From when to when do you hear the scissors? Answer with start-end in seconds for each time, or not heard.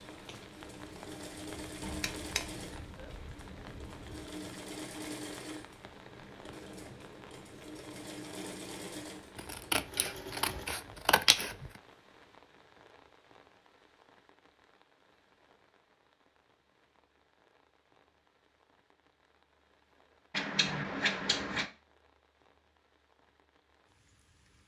1.8-4.1, 9.3-11.7, 20.3-21.7.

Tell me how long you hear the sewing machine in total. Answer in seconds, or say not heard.
11 s.